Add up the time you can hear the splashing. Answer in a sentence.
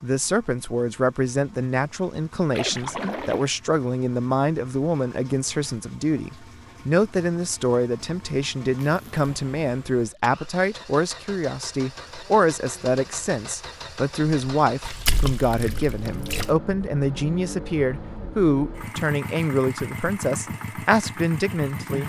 The splashing can be heard for 3 seconds in total.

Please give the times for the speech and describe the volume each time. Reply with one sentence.
The speech can be heard from 0.0 to 22.0 s, at a steady volume.